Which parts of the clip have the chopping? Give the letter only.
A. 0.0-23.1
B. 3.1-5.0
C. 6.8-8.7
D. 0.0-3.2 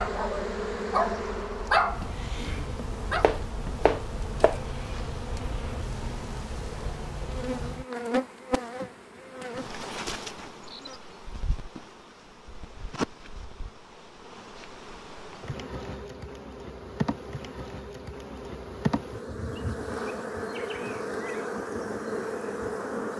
B.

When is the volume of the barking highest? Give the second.
2 s.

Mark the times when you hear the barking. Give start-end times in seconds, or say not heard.
0.0-3.2.